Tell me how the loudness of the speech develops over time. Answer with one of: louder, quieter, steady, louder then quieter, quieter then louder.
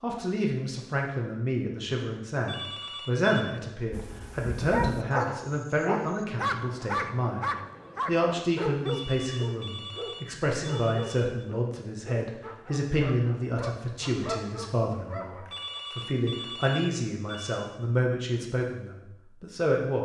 steady.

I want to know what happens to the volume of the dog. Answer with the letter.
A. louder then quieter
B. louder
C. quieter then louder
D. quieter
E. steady
D.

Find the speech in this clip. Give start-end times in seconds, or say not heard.
0.0-20.0.